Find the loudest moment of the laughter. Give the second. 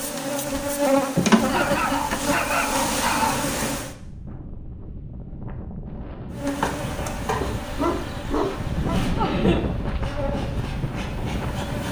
9 s.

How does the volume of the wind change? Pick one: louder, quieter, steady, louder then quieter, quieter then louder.
louder.